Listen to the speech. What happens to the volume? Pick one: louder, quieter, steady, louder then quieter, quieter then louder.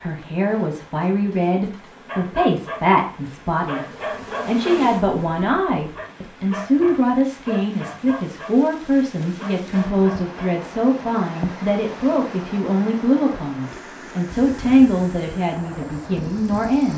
steady.